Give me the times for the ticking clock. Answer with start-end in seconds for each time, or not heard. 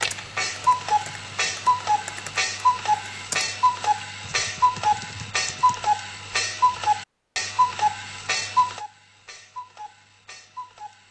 0.0-11.0.